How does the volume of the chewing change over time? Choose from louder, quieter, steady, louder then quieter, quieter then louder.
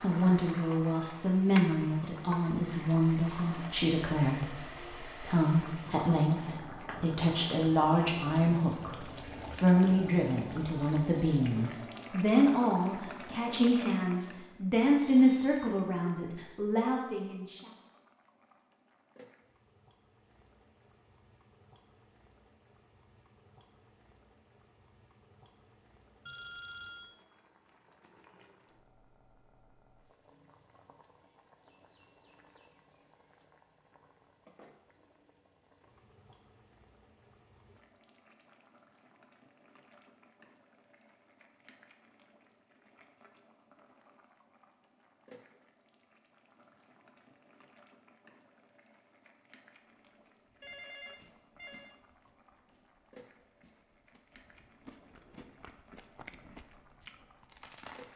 quieter then louder.